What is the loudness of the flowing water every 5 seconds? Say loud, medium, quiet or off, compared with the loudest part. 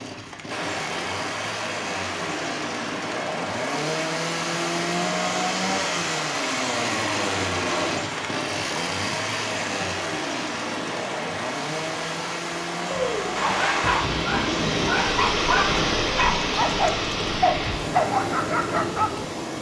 medium, medium, loud, loud.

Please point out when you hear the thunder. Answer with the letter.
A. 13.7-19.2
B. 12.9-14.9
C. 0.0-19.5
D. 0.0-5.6
B.